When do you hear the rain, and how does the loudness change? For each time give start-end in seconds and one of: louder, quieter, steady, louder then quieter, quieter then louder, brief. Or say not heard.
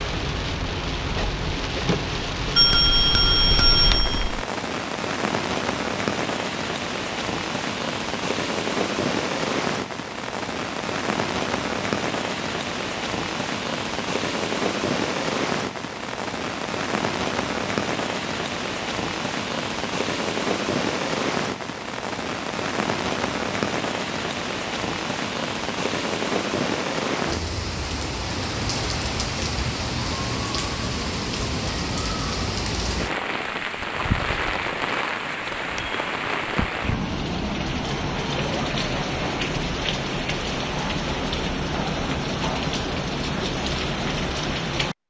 0.0-45.0 steady.